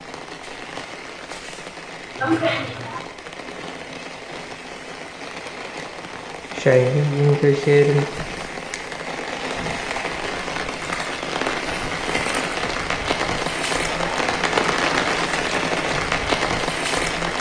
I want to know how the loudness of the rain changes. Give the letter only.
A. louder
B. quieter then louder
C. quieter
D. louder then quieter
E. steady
A.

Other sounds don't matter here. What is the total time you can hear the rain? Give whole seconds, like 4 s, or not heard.
17 s.